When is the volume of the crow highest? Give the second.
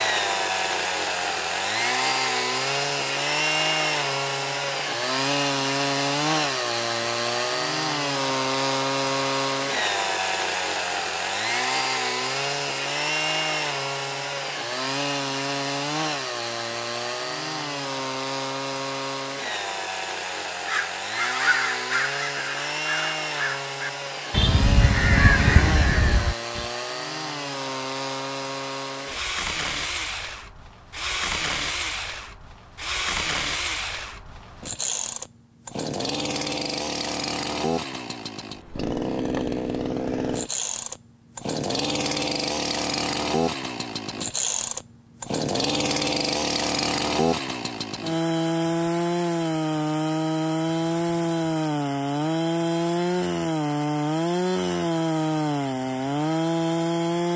25 s.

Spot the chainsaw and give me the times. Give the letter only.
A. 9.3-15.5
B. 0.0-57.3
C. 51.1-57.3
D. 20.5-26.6
B.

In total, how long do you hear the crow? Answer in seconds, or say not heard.
6 s.